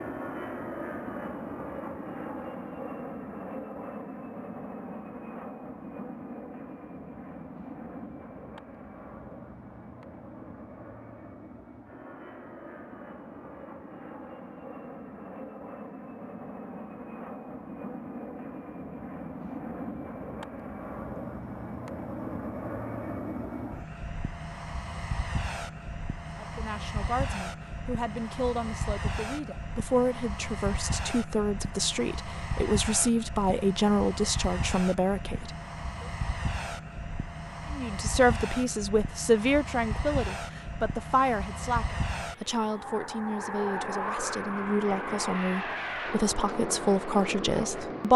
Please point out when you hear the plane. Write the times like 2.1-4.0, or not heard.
0.0-48.1.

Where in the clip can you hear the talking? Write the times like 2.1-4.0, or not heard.
26.4-36.0, 37.7-48.1.